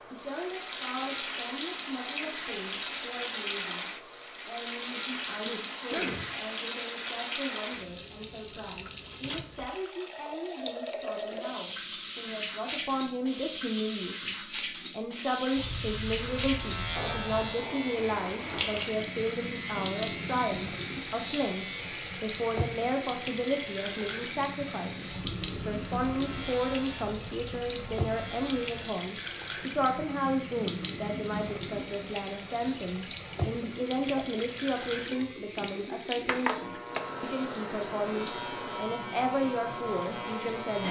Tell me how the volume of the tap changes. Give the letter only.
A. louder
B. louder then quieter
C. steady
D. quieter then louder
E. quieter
C.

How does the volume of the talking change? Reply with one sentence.
The volume of the talking goes up.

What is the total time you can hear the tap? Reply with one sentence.
You can hear the tap for 41 seconds altogether.